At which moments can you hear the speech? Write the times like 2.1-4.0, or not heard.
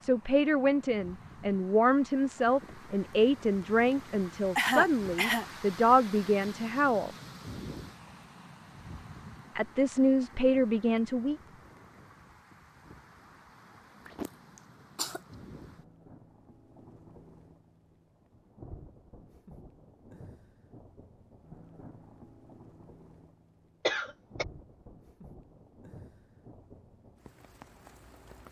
0.0-7.1, 9.6-11.4.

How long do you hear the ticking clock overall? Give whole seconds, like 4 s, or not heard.
not heard.